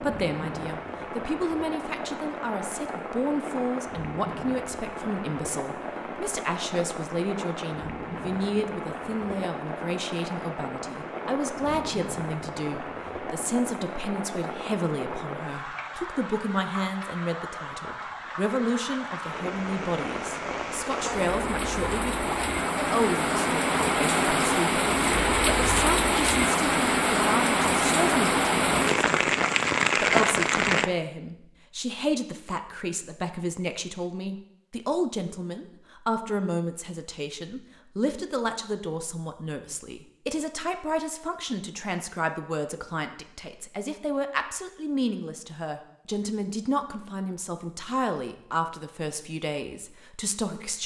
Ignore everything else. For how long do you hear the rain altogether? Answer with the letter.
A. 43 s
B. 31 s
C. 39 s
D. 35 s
B.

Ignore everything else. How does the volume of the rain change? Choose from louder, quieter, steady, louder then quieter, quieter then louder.
louder.